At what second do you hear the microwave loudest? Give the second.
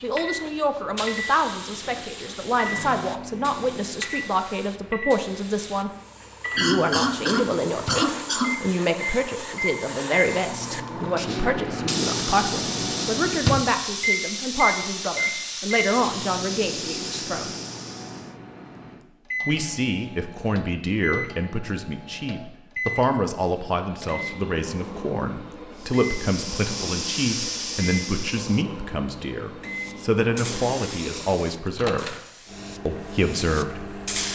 14 s.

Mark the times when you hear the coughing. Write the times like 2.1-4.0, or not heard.
6.5-8.6.